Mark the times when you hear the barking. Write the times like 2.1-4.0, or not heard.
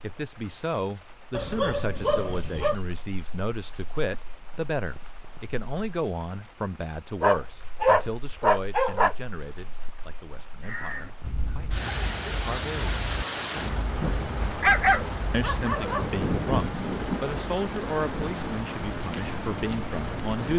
1.3-2.8, 7.2-9.2, 14.6-16.2.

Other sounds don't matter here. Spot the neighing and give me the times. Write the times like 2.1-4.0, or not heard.
not heard.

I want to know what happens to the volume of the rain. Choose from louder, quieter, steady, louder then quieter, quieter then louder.
louder.